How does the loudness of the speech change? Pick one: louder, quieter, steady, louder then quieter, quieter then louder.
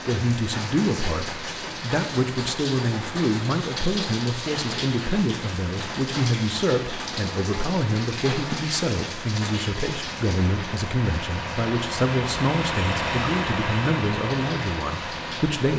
steady.